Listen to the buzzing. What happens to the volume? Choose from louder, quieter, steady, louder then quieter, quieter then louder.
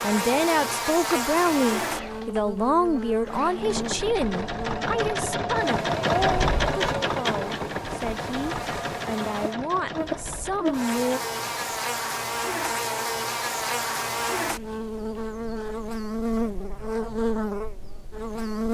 quieter then louder.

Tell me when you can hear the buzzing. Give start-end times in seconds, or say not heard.
0.0-18.6.